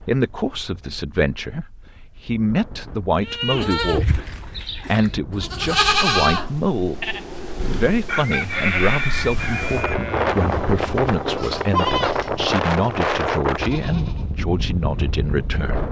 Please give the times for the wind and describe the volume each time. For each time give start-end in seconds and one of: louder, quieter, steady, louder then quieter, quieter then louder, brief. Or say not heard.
0.0-15.8 louder.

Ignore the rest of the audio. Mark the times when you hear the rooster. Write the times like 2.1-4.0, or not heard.
8.1-9.9.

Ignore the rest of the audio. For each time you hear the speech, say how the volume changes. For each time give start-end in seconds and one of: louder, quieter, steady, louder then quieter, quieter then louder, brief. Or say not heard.
0.0-15.8 steady.